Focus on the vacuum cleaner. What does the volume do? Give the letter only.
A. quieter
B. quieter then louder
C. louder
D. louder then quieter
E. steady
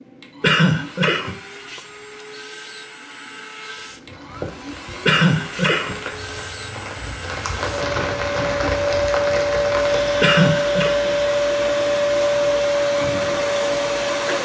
C.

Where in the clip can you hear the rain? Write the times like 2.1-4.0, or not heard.
3.8-14.4.